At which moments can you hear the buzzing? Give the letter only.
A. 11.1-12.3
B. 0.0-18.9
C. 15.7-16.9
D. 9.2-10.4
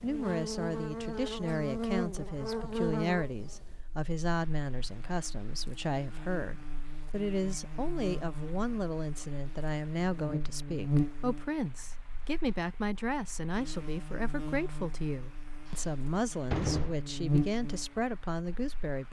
B.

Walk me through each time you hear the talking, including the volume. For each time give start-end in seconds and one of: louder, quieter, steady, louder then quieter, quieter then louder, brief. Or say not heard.
0.0-19.0 steady.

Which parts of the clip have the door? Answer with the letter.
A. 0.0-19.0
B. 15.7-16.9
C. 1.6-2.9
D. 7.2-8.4
B.